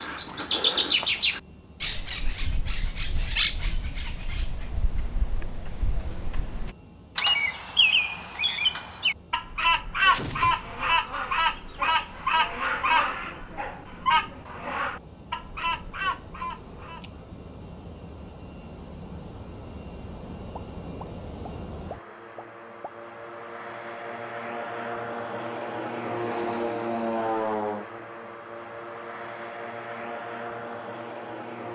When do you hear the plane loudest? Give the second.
27 s.